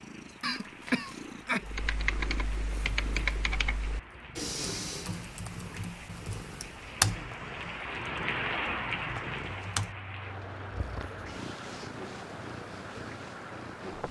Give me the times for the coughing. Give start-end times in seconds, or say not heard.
0.4-1.6.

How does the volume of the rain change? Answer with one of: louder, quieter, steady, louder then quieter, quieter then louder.
louder then quieter.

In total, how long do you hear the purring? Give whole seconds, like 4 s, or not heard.
14 s.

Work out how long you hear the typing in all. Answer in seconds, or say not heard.
8 s.